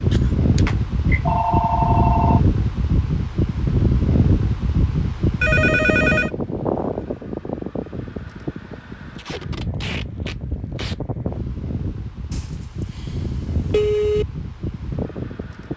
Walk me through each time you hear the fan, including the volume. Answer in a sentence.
You can hear the fan from 0.0 to 15.7 s, getting quieter.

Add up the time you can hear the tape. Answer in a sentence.
You can hear the tape for 2 seconds altogether.